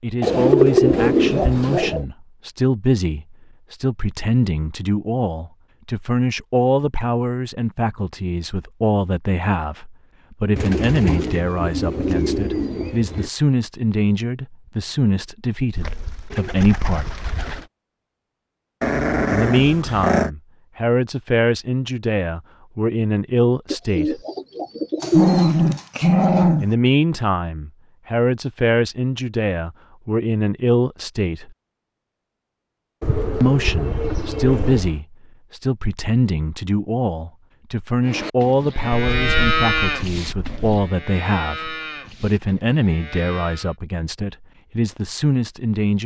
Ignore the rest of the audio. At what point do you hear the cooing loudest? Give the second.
1 s.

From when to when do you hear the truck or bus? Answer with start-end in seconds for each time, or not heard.
not heard.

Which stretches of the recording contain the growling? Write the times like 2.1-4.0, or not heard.
18.8-20.3, 25.0-26.6.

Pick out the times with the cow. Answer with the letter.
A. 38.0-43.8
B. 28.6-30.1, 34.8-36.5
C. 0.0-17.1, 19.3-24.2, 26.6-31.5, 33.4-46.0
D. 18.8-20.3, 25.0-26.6
A.